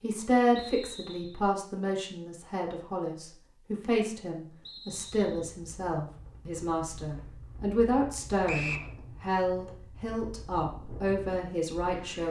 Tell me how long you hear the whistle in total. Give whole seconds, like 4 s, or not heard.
2 s.